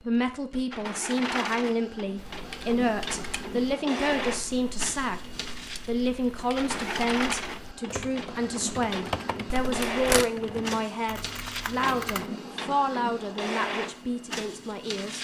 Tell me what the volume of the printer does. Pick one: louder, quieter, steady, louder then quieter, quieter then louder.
steady.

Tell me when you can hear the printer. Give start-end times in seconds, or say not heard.
0.0-15.2.